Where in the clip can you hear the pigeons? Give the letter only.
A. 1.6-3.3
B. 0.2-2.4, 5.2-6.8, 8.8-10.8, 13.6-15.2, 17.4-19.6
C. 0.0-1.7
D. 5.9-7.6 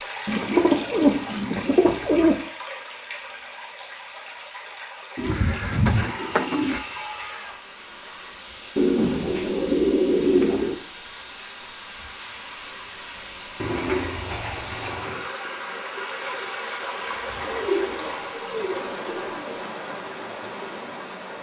B.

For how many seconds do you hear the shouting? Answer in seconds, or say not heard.
2 s.